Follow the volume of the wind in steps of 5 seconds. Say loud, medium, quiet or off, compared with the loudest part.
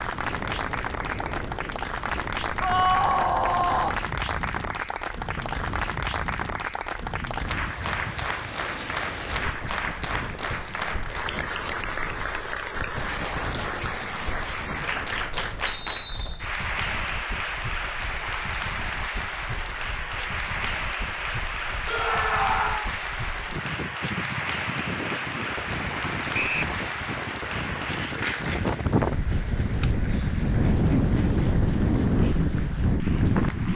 quiet, quiet, quiet, quiet, quiet, medium, loud.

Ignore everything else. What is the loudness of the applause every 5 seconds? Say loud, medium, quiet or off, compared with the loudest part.
loud, loud, loud, loud, loud, loud, quiet.